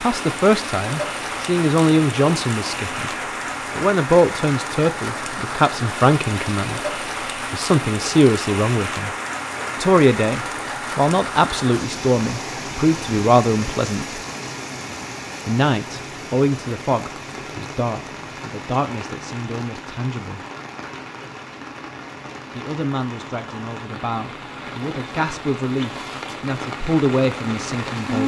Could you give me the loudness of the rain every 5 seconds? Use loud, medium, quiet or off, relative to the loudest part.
loud, loud, loud, medium, medium, loud.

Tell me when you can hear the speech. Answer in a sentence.
The speech can be heard from 0.0 to 3.1 s, from 3.8 to 9.1 s, from 9.8 to 14.2 s, from 15.4 to 20.4 s and from 22.5 to 28.2 s.